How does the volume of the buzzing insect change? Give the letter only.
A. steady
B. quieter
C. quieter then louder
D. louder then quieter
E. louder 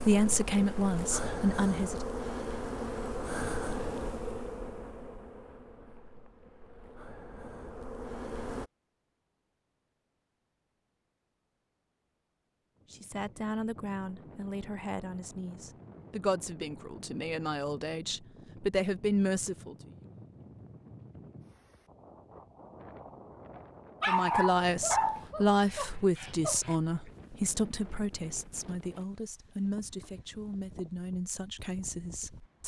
C.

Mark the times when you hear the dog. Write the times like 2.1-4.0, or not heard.
24.0-26.8.